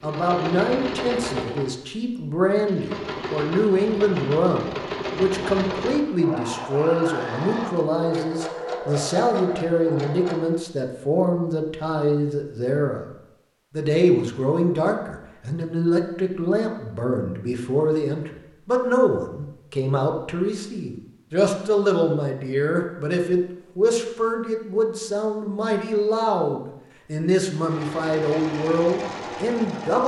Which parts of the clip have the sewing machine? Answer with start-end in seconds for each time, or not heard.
0.0-10.6, 27.5-30.0.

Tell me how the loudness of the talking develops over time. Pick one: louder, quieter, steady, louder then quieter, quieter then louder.
steady.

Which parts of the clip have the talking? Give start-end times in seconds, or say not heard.
0.0-13.1, 13.8-30.0.